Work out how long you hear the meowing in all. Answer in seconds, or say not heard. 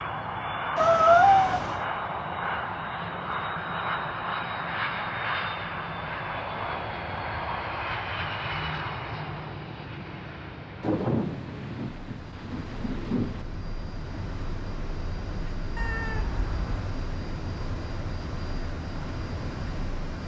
2 s.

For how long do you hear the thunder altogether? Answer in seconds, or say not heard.
3 s.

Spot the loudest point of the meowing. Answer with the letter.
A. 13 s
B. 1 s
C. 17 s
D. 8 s
B.